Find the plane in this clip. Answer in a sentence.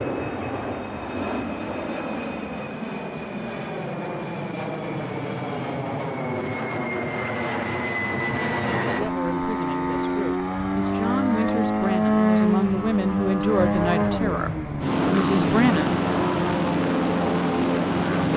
You can hear the plane from 0.0 to 18.3 s.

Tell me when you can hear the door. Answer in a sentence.
The door can't be heard in this clip.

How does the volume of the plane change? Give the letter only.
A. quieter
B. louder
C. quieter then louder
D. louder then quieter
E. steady
B.